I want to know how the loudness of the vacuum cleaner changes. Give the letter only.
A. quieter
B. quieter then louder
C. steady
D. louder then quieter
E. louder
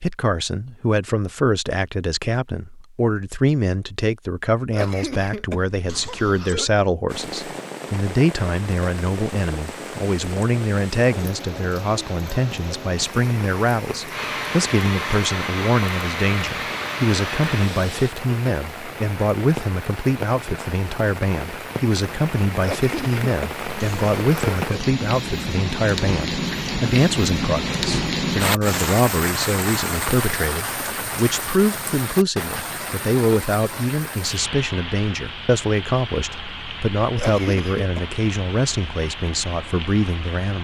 C.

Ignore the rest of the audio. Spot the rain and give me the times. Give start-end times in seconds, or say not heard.
7.0-40.5.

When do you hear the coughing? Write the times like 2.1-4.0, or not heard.
4.7-6.8, 22.6-24.9, 37.1-38.0.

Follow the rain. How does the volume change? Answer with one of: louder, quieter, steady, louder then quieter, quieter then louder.
louder then quieter.